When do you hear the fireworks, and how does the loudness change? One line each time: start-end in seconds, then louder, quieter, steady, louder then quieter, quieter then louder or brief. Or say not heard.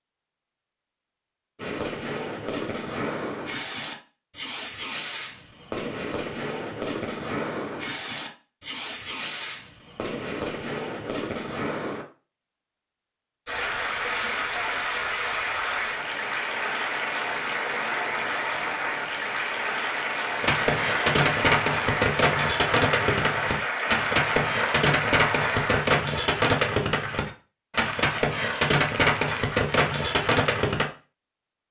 1.6-12.1 steady
20.4-30.9 steady.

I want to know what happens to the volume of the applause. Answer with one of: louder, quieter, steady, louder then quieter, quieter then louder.
steady.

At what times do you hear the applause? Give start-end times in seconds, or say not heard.
13.4-25.9.